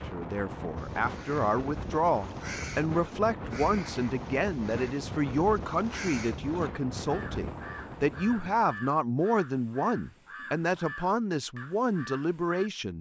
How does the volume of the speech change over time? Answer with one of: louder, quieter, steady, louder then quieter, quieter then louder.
steady.